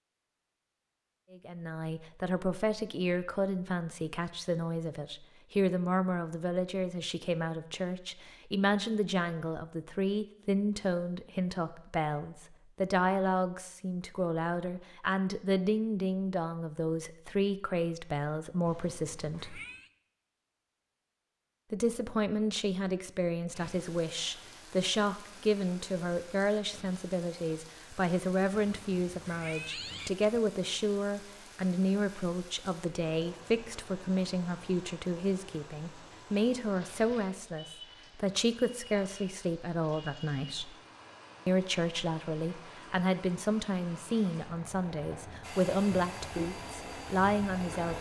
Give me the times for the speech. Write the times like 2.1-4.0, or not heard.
1.3-19.6, 21.7-40.8, 41.5-47.9.